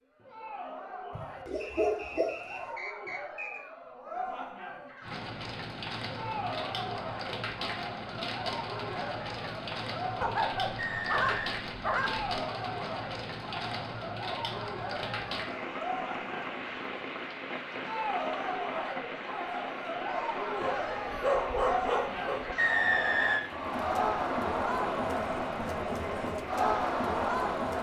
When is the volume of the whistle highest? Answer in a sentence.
The loudest moment of the whistle is at 23 seconds.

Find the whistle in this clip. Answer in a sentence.
The whistle can be heard from 1.6 to 3.6 s, from 10.8 to 11.6 s and from 22.6 to 23.4 s.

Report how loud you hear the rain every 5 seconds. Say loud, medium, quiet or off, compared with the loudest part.
off, loud, loud, loud, loud, medium.